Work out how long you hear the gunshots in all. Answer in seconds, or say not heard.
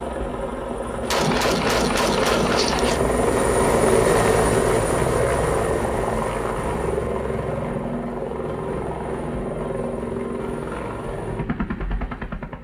2 s.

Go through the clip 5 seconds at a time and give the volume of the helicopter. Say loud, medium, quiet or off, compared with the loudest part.
loud, loud, medium.